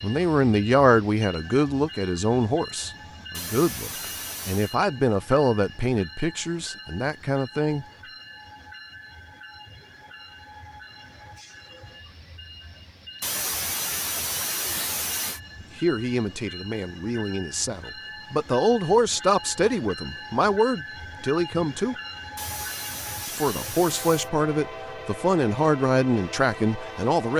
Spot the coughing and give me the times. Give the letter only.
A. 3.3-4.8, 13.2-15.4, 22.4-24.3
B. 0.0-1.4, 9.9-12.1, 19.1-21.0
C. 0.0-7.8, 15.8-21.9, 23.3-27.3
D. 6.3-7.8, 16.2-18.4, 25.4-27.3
A.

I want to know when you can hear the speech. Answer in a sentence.
The speech can be heard from 0.0 to 7.8 s, from 15.8 to 21.9 s and from 23.3 to 27.3 s.